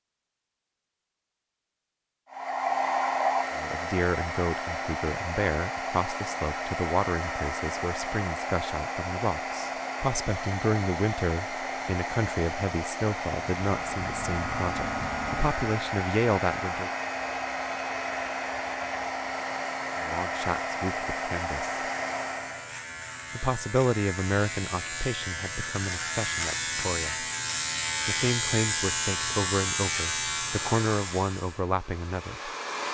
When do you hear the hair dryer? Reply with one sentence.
The hair dryer can be heard from 2.3 to 22.7 s and from 30.4 to 32.8 s.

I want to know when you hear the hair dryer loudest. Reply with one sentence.
The loudest moment of the hair dryer is at 3 seconds.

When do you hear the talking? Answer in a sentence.
The talking can be heard from 3.5 to 16.9 s, from 20.0 to 21.8 s, from 23.3 to 27.2 s and from 28.1 to 32.5 s.